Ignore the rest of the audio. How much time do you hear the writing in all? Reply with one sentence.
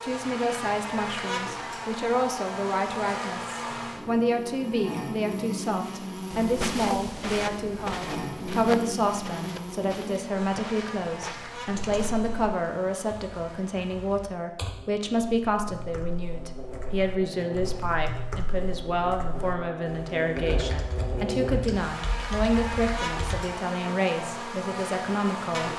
You can't hear the writing here.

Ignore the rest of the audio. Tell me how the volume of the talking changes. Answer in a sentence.
The loudness of the talking stays about the same.